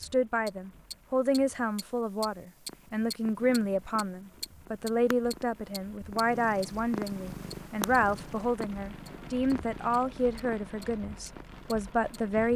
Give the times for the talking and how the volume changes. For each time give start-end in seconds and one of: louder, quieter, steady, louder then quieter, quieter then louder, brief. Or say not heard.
0.0-12.5 steady.